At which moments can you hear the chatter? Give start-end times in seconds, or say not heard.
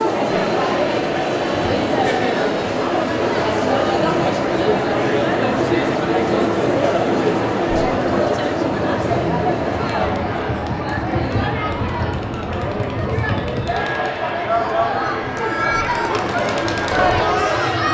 0.0-17.9.